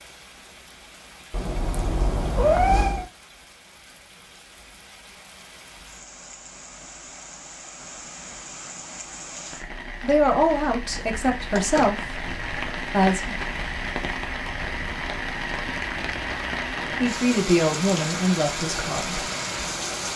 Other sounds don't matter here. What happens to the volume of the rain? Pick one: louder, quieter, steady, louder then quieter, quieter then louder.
louder.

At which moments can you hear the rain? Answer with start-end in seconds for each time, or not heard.
0.0-20.1.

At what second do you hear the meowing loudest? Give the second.
3 s.